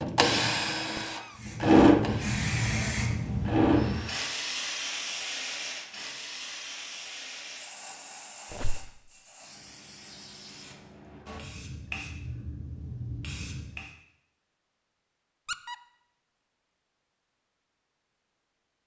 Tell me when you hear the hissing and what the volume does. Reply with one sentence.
The hissing can be heard from 1.4 to 13.9 s, getting quieter then louder.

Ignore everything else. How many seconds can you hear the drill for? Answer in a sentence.
You can hear the drill for 4 seconds altogether.